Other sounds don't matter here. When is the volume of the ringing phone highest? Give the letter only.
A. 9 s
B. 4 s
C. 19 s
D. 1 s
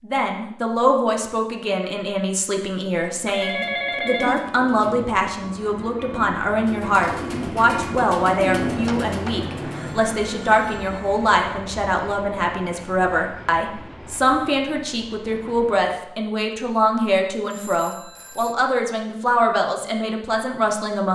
B.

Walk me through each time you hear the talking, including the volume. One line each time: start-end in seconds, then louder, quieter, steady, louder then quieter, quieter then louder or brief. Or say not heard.
0.0-21.1 steady.